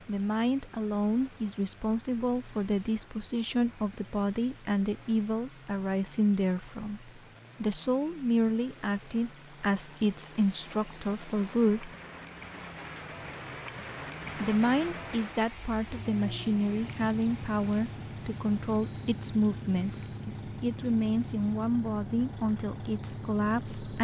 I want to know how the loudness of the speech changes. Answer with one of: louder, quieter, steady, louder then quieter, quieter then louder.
steady.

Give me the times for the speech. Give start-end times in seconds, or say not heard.
0.1-11.9, 14.3-23.9.